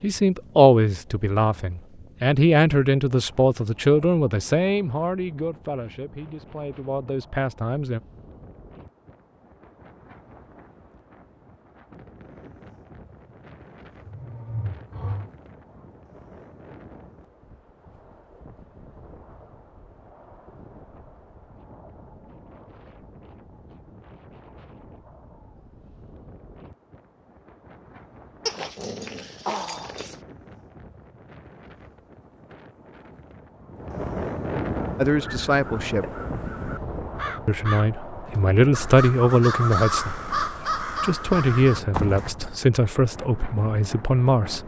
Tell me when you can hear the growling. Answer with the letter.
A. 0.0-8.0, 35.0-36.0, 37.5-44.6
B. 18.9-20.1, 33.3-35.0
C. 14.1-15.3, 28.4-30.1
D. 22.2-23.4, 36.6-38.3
C.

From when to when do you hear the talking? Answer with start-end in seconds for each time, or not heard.
0.0-8.0, 35.0-36.0, 37.5-44.6.